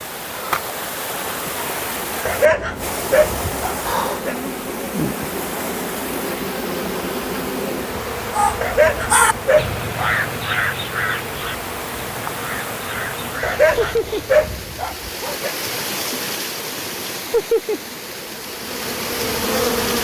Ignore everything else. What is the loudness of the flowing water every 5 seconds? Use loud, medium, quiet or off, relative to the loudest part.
loud, medium, loud, loud.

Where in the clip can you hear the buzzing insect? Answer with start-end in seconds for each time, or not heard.
0.1-14.3, 17.6-20.0.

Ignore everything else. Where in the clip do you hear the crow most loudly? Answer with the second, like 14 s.
9 s.